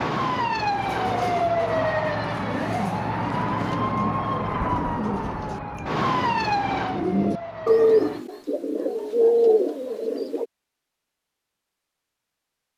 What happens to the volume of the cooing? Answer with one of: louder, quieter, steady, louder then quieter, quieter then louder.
louder.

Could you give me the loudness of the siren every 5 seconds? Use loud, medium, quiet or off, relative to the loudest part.
loud, loud, off.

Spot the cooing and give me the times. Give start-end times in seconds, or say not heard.
0.8-10.4.